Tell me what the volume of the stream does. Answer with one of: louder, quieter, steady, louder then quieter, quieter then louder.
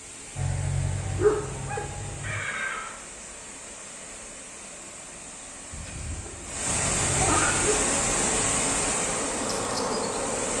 louder.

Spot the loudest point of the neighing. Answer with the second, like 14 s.
7 s.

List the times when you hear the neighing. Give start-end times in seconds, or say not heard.
2.2-3.0, 5.7-7.5.